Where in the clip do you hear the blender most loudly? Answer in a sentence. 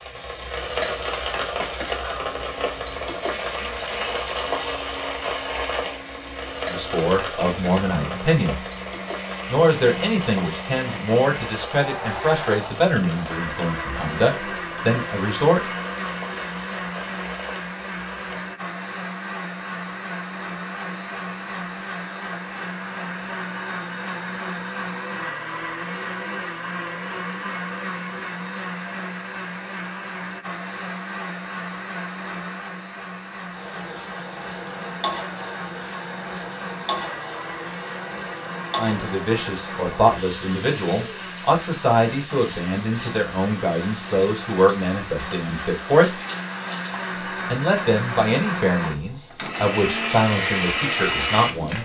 The loudest moment of the blender is at 51 seconds.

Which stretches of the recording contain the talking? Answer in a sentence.
You can hear the talking from 6.7 to 8.8 s, from 9.4 to 15.6 s, from 38.8 to 46.1 s and from 47.5 to 51.7 s.